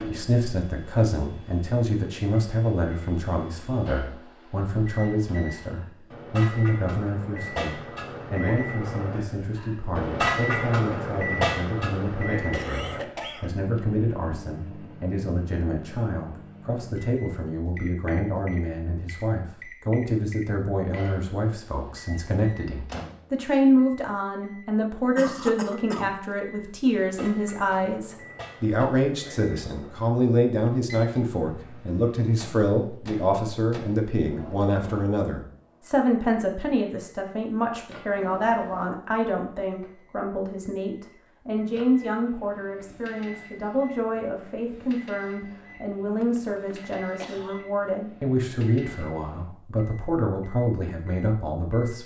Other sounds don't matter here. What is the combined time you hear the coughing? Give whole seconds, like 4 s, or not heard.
4 s.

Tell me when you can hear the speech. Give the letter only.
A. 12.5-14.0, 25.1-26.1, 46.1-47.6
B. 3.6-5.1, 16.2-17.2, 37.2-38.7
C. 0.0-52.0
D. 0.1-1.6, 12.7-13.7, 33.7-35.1
C.